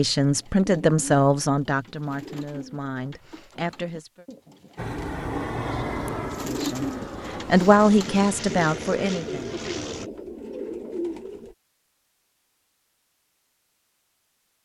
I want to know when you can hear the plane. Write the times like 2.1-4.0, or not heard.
4.8-10.1.